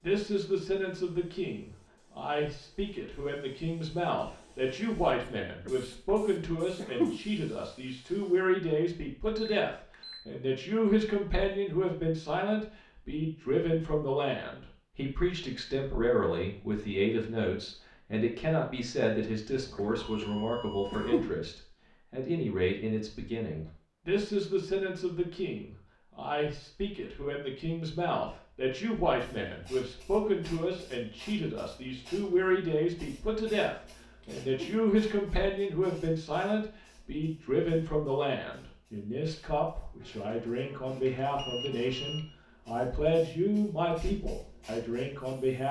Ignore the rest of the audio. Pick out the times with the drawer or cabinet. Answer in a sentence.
You can't hear the drawer or cabinet here.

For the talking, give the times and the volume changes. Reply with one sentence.
You can hear the talking from 0.0 to 45.6 s, at a steady volume.